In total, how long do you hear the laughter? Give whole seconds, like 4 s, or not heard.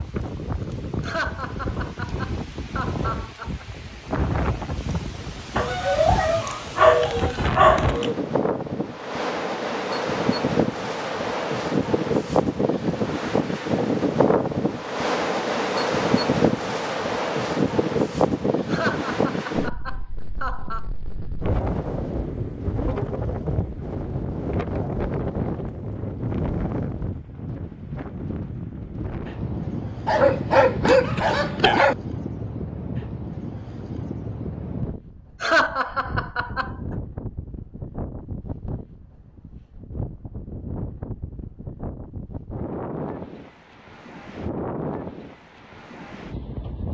6 s.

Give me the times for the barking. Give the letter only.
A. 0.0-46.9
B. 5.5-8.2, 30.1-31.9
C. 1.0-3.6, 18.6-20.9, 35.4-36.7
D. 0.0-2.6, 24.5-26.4
B.